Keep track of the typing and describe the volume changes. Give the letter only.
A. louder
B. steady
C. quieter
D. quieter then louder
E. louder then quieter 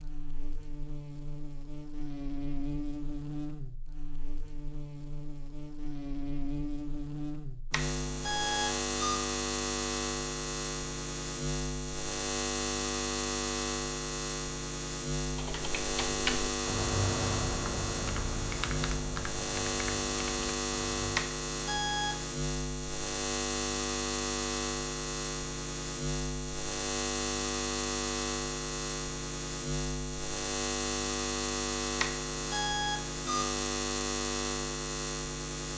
C.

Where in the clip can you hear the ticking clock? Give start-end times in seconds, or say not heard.
not heard.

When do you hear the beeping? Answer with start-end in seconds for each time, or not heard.
7.7-9.2, 21.1-22.2, 31.9-33.5.